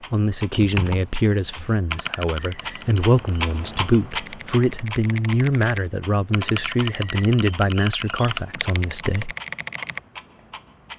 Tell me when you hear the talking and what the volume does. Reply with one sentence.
The talking can be heard from 0.1 to 9.3 s, at a steady volume.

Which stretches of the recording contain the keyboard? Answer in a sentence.
The keyboard can be heard from 0.5 to 10.0 s.